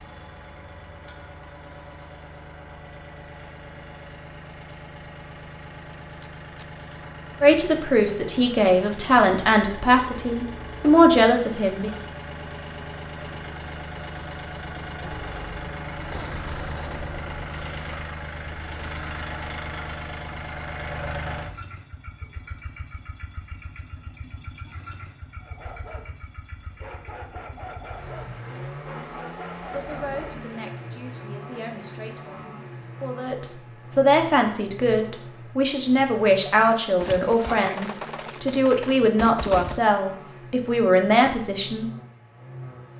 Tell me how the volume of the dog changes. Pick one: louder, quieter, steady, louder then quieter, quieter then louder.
louder.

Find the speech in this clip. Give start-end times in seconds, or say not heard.
7.4-11.9, 29.2-41.9.